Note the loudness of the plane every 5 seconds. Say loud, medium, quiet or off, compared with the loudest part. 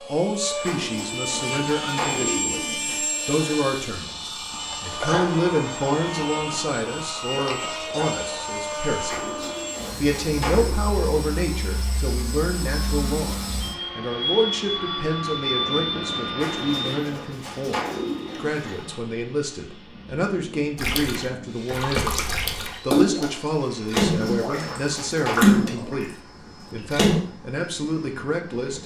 loud, loud, loud, loud, quiet, quiet.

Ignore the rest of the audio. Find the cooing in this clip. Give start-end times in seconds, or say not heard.
0.6-3.0, 9.1-10.8, 16.4-19.0, 23.9-25.6.